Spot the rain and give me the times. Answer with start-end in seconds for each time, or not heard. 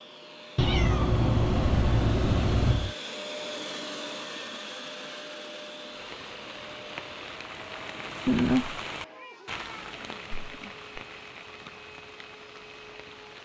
5.8-13.4.